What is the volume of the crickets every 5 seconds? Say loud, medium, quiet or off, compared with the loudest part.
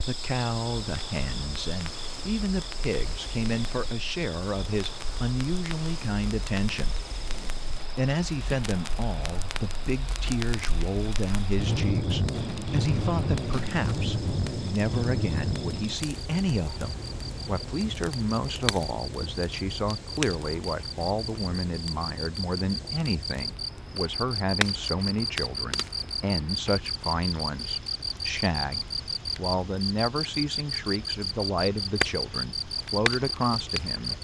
medium, quiet, quiet, medium, loud, loud, loud.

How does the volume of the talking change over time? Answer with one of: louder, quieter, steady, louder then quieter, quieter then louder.
steady.